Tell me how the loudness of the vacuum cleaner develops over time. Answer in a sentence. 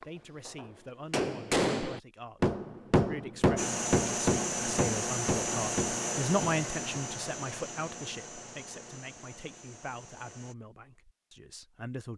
The volume of the vacuum cleaner goes down.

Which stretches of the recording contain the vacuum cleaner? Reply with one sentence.
You can hear the vacuum cleaner from 3.5 to 10.6 s.